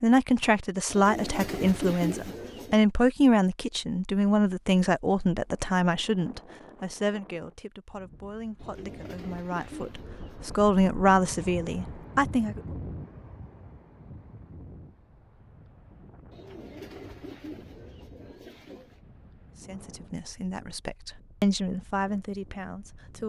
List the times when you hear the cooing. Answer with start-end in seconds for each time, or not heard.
0.9-2.9, 8.6-10.7, 16.3-19.0.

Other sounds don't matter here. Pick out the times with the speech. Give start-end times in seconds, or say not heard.
0.0-12.6, 19.6-23.2.